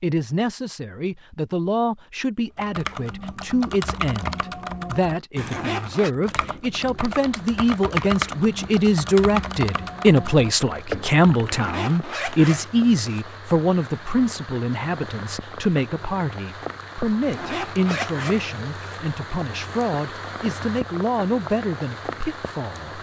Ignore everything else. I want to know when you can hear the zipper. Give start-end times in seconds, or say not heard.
5.3-6.1, 11.4-13.2, 17.2-19.0.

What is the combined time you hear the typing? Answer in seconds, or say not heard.
9 s.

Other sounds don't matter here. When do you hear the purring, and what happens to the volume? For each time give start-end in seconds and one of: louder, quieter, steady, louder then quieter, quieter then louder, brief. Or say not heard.
not heard.